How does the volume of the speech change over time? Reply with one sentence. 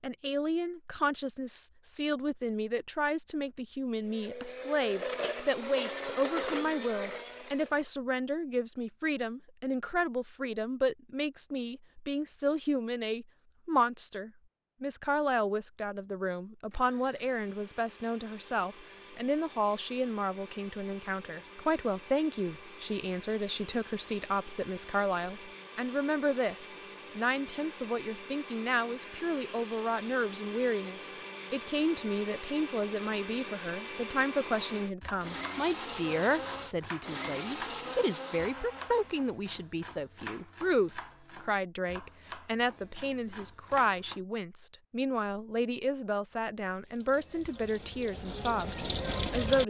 The loudness of the speech stays about the same.